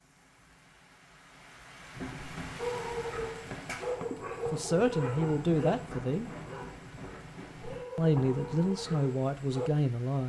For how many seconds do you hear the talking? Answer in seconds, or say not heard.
4 s.